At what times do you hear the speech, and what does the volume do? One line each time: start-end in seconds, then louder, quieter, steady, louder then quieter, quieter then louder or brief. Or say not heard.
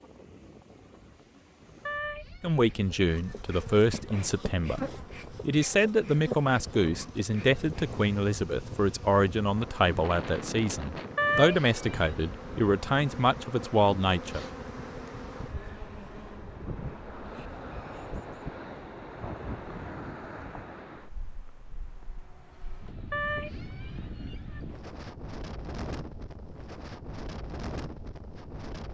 2.4-14.4 steady.